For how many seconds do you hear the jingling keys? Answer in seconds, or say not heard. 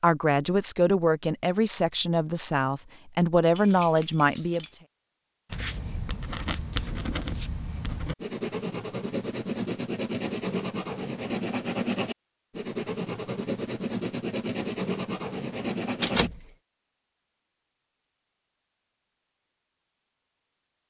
2 s.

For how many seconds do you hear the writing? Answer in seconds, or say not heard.
11 s.